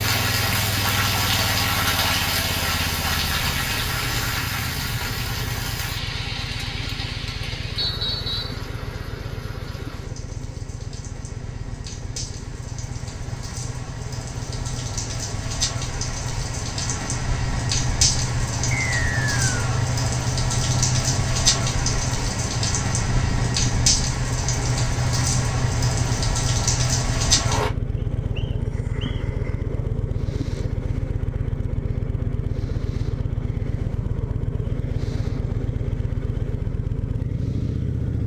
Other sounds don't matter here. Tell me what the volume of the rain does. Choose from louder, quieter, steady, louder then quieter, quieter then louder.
quieter then louder.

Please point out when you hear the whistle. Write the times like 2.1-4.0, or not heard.
7.8-8.6, 18.8-19.6, 27.9-29.2.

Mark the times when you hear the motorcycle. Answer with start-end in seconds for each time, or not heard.
0.0-38.2.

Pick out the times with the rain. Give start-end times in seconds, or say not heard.
0.0-27.7.